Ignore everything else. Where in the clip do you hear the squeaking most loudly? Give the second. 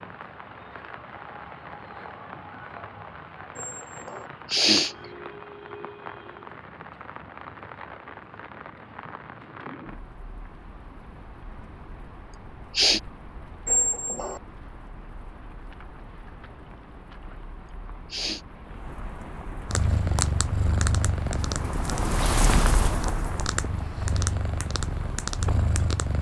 14 s.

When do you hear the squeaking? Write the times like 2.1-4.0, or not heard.
3.5-4.3, 13.7-14.4.